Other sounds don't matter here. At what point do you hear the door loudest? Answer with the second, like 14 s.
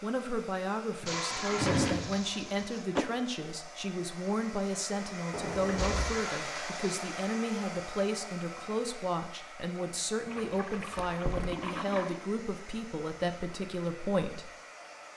2 s.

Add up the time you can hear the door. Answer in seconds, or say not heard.
3 s.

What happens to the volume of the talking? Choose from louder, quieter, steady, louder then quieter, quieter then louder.
steady.